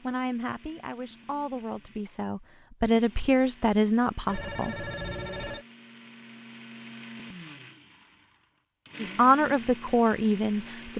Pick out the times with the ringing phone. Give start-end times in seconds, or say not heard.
4.2-5.7.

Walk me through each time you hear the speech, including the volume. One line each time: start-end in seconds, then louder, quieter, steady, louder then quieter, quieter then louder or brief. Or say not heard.
0.0-4.8 louder
9.0-10.9 brief.